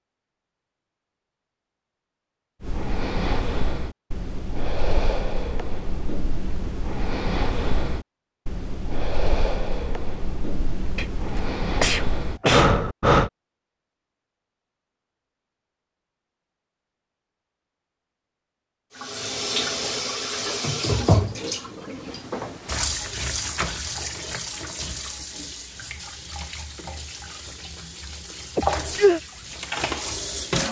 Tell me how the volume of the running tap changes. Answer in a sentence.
The loudness of the running tap goes down, then up.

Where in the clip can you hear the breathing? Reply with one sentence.
The breathing can be heard from 2.6 to 13.3 s.